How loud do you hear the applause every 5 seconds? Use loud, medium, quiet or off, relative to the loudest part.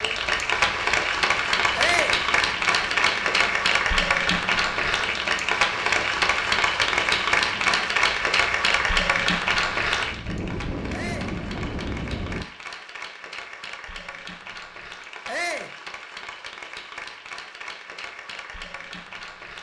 loud, loud, quiet, quiet.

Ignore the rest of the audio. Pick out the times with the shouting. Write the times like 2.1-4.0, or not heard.
1.8-2.2, 10.9-11.3, 15.2-15.8.